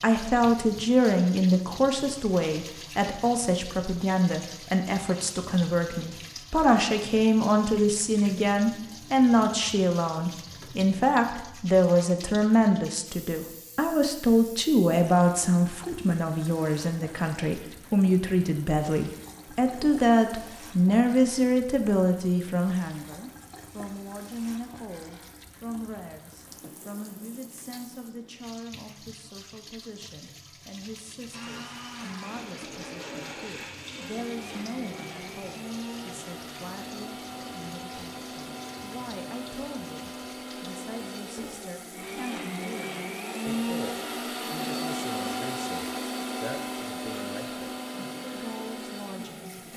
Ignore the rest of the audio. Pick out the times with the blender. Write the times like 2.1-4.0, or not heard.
31.3-49.7.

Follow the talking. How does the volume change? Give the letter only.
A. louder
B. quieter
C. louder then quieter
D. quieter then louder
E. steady
B.